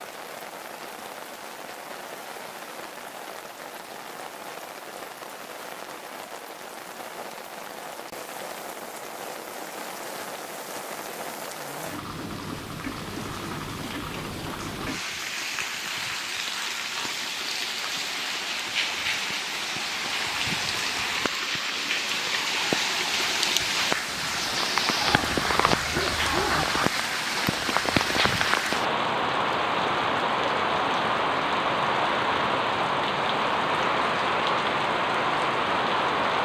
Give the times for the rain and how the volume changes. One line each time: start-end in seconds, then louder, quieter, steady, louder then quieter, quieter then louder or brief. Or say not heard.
0.0-36.3 louder.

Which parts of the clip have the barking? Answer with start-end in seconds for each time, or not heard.
25.0-26.6.